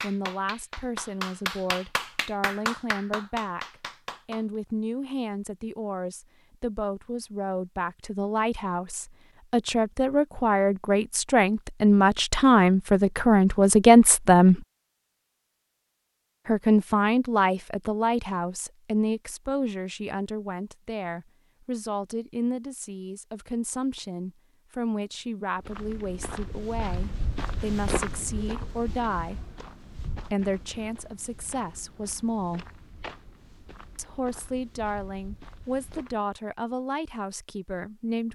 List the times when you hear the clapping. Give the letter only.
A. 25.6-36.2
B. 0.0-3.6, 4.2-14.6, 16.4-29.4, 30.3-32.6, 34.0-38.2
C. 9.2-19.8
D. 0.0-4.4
D.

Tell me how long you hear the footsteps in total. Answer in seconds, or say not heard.
11 s.